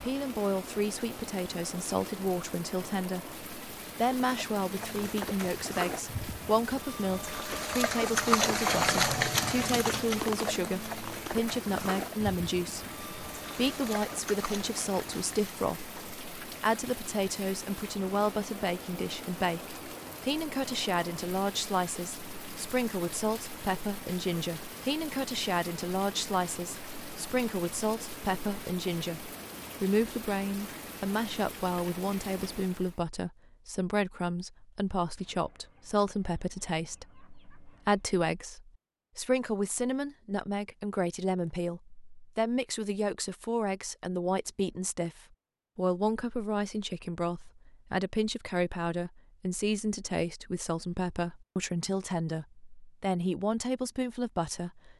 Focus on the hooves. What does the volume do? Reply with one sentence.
The volume of the hooves goes up, then down.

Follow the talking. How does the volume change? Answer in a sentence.
The volume of the talking stays about the same.